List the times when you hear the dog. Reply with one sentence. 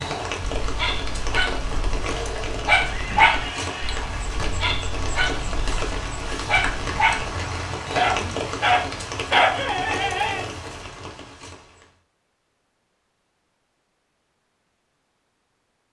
The dog can be heard from 0.4 to 10.5 s.